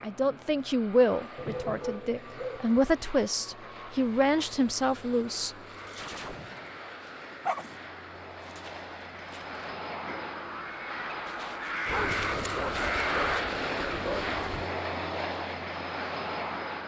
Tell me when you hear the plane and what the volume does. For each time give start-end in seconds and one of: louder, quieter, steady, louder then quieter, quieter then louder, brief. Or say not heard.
0.0-16.8 louder.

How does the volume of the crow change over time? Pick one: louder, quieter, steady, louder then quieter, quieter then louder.
louder.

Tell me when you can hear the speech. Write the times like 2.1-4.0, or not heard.
0.0-5.5.